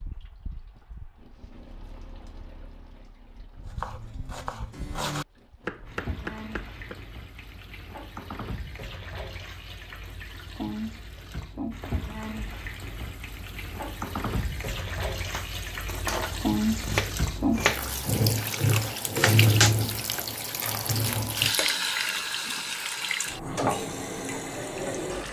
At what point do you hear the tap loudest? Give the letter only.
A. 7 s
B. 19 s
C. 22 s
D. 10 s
B.